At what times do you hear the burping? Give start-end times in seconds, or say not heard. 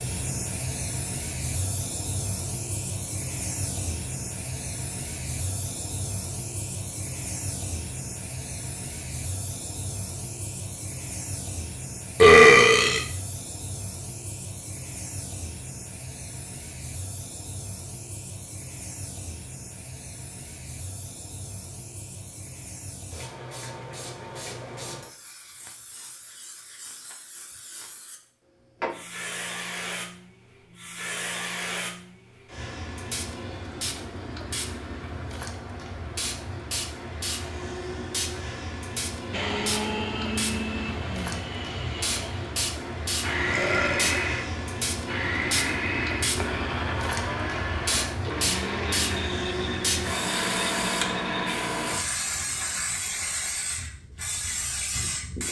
12.2-13.0, 43.5-44.2.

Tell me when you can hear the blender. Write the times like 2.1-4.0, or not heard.
39.3-51.5.